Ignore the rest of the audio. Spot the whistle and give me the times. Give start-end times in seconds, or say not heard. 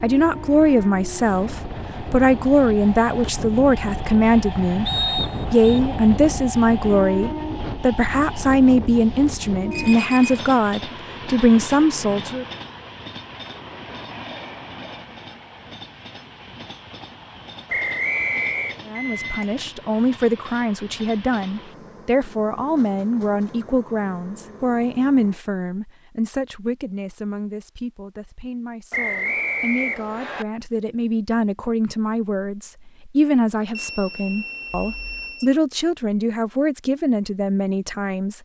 4.8-5.8, 17.6-18.8, 28.9-30.4.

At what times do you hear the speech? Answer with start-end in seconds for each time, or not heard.
0.0-4.8, 5.5-12.4, 18.9-38.4.